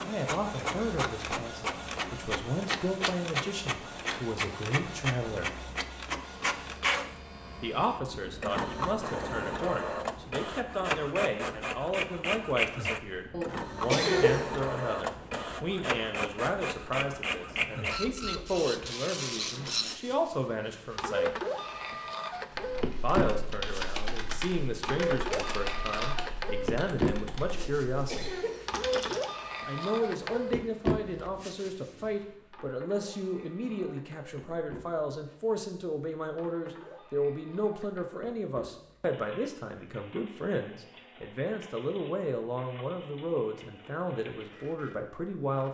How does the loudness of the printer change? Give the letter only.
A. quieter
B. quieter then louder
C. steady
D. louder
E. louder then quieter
A.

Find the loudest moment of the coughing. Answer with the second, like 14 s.
14 s.